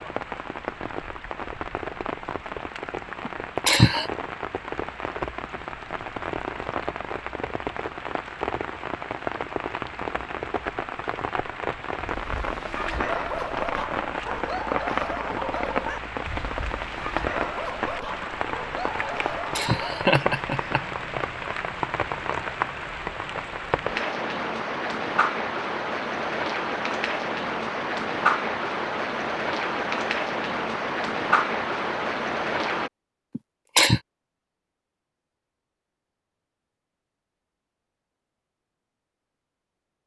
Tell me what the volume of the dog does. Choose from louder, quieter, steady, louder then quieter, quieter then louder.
steady.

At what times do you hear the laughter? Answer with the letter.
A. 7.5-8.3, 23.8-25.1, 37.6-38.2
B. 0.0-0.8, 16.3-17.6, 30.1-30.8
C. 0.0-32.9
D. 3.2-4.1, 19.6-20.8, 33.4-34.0
D.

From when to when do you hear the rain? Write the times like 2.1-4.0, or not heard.
0.0-32.9.